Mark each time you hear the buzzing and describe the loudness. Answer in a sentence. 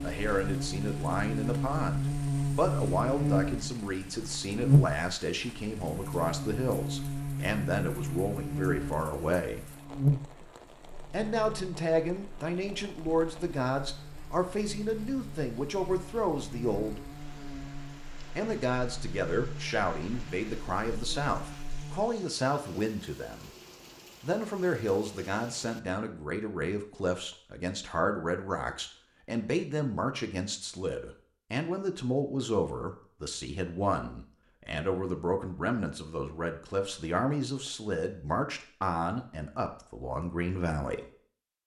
The buzzing can be heard from 0.0 to 22.0 s, getting quieter.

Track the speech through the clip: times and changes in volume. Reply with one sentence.
You can hear the speech from 0.0 to 9.7 s, at a steady volume; from 11.1 to 17.1 s, at a steady volume; from 18.4 to 23.5 s, at a steady volume; and from 24.2 to 41.0 s, at a steady volume.